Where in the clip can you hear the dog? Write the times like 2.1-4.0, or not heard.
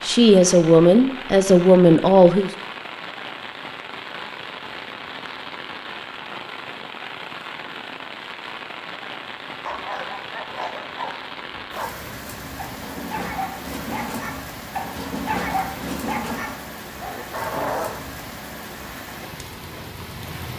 9.7-18.1.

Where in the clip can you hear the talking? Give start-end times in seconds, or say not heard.
0.0-2.5.